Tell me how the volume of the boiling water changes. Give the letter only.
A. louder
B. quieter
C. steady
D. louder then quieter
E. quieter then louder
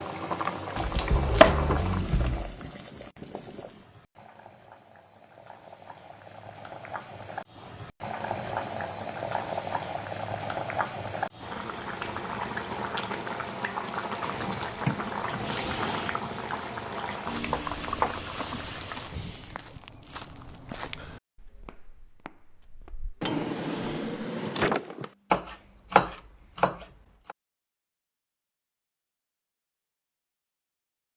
E.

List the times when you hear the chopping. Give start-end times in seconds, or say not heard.
0.8-2.5, 17.5-18.2, 25.3-27.4.